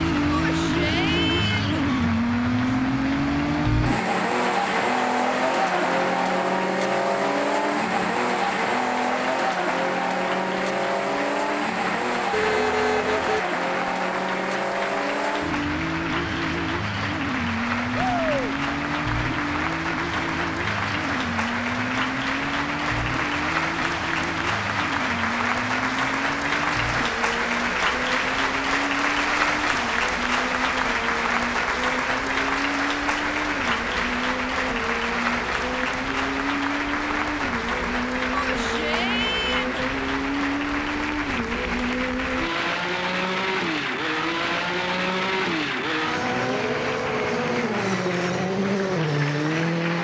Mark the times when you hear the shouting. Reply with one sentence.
The shouting can be heard from 0.3 to 1.9 s, from 17.9 to 18.6 s and from 38.3 to 39.9 s.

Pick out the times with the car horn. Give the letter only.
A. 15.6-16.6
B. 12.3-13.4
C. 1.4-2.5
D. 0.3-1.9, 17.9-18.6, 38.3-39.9
B.